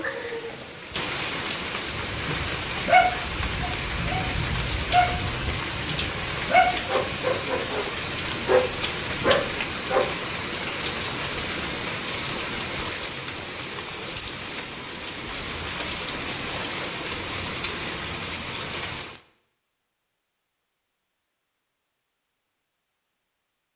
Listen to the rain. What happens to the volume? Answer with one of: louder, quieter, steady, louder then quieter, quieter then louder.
steady.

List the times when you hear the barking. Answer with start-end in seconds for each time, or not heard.
1.9-10.2.